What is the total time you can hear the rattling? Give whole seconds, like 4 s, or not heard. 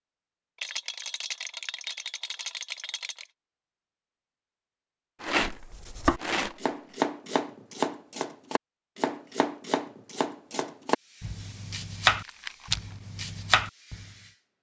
5 s.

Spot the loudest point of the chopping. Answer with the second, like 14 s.
12 s.